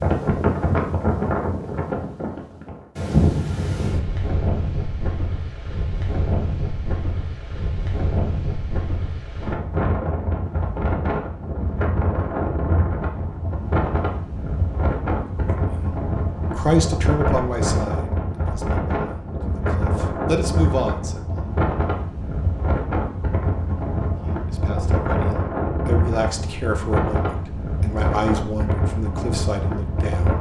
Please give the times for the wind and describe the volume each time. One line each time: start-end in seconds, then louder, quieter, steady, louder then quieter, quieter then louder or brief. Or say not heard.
0.0-30.3 steady.